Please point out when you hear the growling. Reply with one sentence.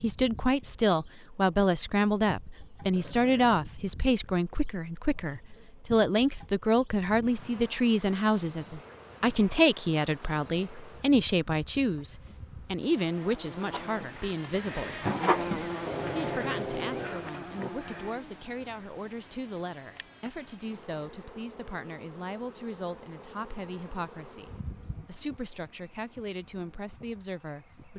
The growling can be heard from 2.9 to 3.5 s and from 15.8 to 17.7 s.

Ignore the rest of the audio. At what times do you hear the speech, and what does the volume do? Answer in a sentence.
The speech can be heard from 0.0 to 27.9 s, getting quieter.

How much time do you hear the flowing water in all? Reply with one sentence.
The flowing water can't be heard in this clip.